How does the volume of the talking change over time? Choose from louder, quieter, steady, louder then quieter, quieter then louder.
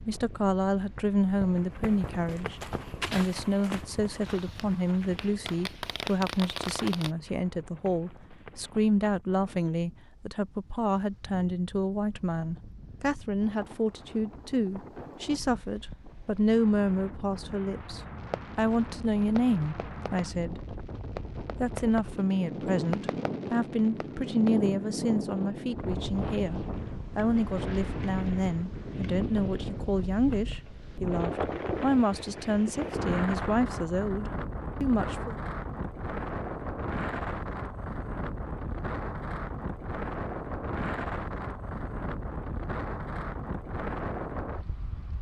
steady.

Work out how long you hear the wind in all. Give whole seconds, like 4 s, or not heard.
45 s.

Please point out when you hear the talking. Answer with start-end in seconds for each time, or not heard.
0.0-20.8, 21.6-35.4.